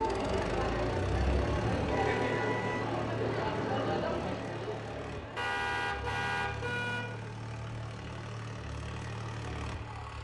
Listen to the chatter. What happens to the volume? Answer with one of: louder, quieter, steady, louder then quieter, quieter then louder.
quieter.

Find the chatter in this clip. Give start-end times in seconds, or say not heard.
0.0-10.1.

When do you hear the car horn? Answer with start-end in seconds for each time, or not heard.
1.1-2.9, 5.3-7.2.